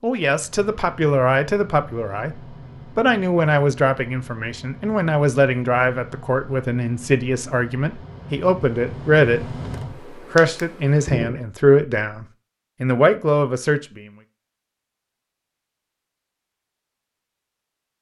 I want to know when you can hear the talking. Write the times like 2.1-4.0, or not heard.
0.0-2.4, 3.0-9.4, 10.3-14.1.